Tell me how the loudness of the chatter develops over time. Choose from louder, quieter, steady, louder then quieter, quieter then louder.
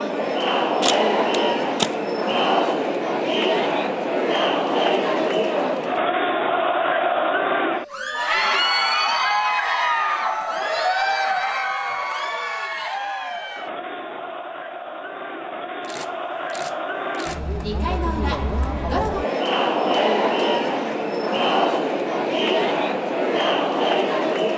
quieter then louder.